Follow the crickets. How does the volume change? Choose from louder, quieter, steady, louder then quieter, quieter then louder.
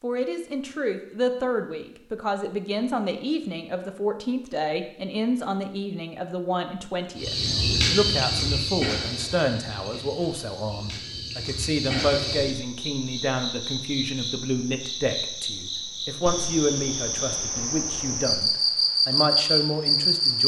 quieter then louder.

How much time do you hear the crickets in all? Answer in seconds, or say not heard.
13 s.